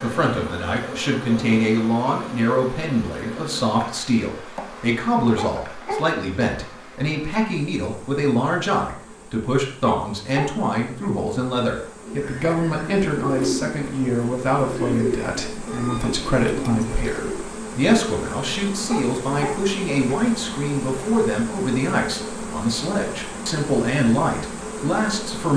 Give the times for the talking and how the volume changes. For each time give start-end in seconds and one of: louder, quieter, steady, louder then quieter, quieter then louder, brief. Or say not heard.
0.0-25.5 steady.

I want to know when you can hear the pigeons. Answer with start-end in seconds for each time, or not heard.
12.0-17.4.